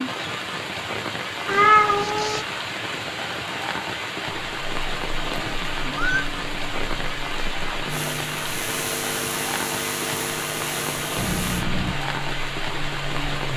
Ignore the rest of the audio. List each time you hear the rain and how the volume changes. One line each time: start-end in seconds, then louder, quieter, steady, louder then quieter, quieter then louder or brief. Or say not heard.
0.0-13.5 steady.